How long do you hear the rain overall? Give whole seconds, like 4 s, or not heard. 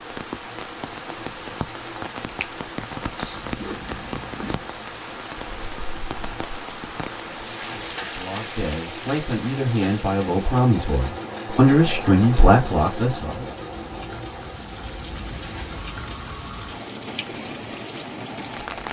19 s.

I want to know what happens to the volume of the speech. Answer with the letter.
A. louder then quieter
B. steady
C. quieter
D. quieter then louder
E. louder
E.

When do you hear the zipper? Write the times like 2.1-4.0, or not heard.
3.3-4.6.